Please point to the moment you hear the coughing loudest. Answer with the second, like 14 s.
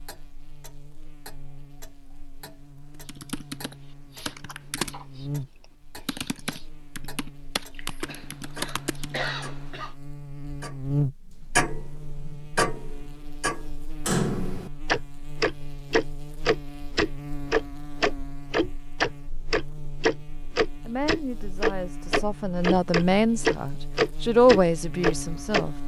9 s.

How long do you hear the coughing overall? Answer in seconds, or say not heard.
2 s.